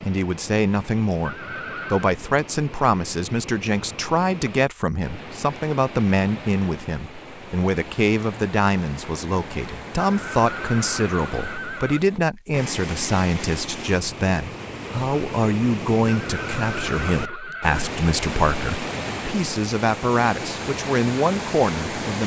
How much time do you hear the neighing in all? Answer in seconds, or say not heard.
5 s.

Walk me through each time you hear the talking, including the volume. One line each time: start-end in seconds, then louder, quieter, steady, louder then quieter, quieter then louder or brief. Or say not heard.
0.0-22.2 steady.